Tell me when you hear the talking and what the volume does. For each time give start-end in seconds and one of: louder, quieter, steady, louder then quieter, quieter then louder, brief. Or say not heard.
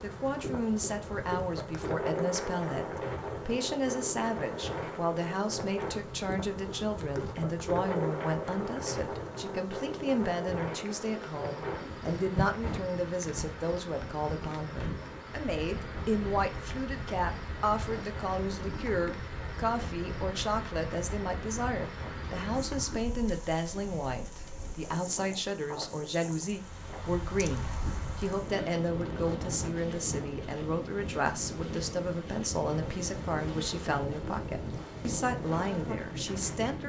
0.0-36.8 steady.